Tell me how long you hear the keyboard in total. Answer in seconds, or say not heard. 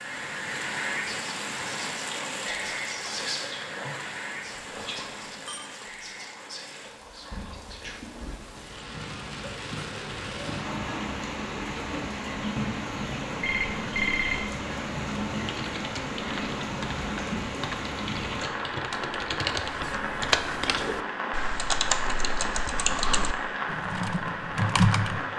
10 s.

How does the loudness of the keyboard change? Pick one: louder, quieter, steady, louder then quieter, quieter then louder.
louder.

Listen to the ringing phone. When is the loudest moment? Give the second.
14 s.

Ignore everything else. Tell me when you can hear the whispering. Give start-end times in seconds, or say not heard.
1.1-8.0.